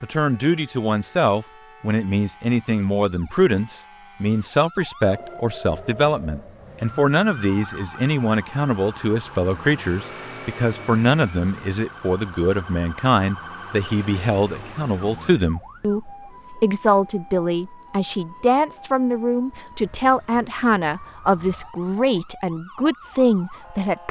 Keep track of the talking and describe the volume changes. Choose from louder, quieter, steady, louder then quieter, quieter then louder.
steady.